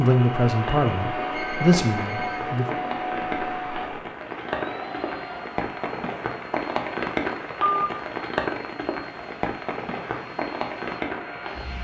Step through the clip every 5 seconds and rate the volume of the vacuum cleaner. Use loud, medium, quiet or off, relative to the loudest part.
loud, medium, medium.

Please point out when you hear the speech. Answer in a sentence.
The speech can be heard from 0.0 to 2.8 s.